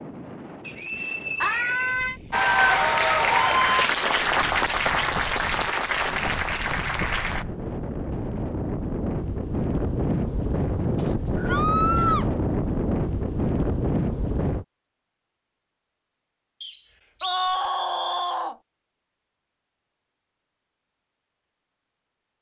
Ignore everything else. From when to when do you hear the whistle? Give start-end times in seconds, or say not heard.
0.7-2.1, 10.9-11.6, 16.6-18.4.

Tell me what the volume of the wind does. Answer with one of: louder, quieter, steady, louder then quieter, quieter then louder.
louder.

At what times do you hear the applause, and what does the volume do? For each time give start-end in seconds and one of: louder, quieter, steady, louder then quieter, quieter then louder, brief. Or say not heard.
2.3-7.5 quieter.